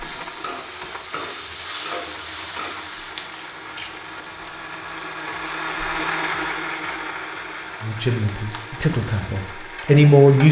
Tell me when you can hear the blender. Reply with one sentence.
You can hear the blender from 0.0 to 10.4 s.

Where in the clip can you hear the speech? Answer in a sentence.
The speech can be heard from 7.8 to 10.4 s.